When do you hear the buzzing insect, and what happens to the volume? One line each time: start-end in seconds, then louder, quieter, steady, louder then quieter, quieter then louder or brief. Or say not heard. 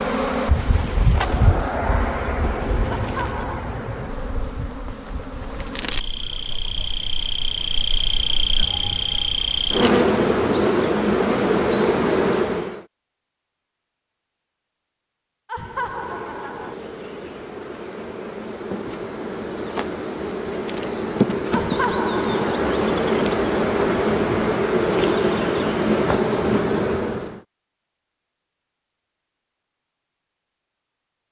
0.0-12.8 quieter then louder
15.6-27.4 louder.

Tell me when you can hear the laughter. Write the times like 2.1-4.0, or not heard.
3.0-3.6, 15.4-16.8, 21.5-22.7.